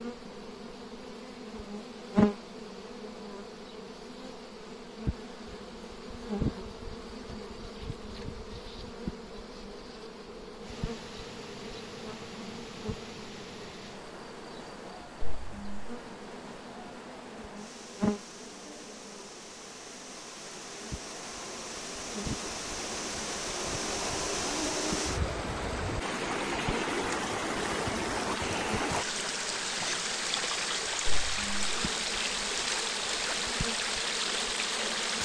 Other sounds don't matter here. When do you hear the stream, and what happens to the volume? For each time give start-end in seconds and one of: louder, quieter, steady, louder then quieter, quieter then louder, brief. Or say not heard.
10.6-35.2 louder.